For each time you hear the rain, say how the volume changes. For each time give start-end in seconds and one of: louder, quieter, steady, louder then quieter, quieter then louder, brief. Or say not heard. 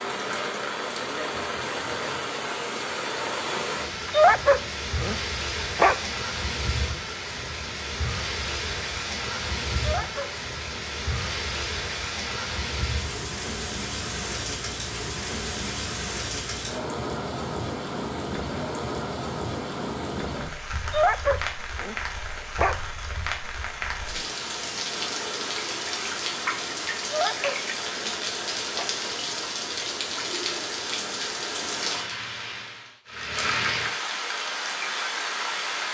0.0-35.8 steady.